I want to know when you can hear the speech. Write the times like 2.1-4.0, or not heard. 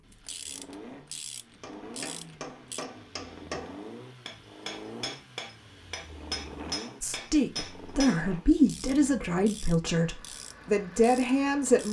7.0-11.8.